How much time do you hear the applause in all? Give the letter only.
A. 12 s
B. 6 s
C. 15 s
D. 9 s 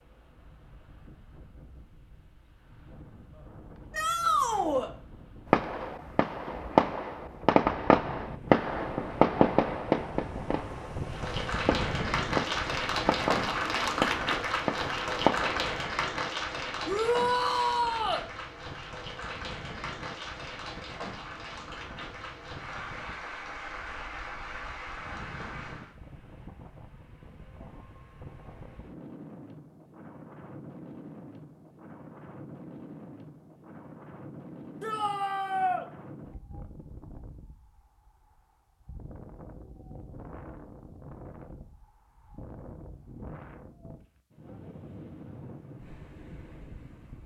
C.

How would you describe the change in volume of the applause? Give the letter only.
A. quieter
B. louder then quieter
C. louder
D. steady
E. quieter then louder
A.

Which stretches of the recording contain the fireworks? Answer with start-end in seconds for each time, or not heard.
5.5-15.8.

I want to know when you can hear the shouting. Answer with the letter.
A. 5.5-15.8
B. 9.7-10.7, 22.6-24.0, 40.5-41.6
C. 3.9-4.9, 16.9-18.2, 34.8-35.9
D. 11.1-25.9
C.